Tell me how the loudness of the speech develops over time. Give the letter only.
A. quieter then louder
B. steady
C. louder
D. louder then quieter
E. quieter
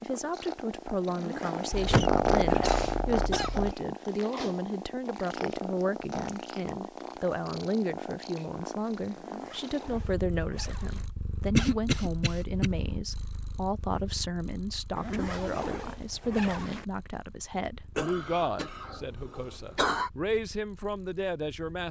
B.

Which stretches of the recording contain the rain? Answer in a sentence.
You can't hear the rain here.